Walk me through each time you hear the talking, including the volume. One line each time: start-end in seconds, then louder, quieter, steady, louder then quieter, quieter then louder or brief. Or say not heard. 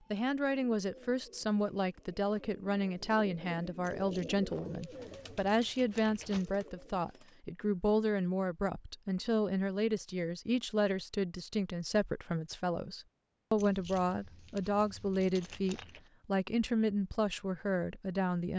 0.1-18.5 steady.